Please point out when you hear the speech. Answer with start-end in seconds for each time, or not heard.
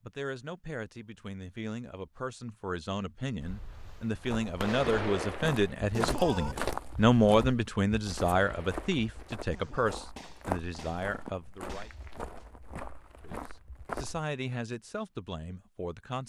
0.0-11.9, 13.2-16.2.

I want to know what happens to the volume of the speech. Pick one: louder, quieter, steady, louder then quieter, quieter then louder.
louder then quieter.